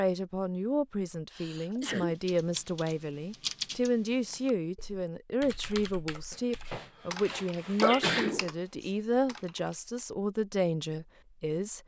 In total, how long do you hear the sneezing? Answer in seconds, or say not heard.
3 s.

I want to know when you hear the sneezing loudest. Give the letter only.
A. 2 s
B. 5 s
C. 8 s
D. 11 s
C.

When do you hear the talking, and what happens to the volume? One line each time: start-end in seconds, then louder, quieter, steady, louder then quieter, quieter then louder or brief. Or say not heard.
0.0-11.8 steady.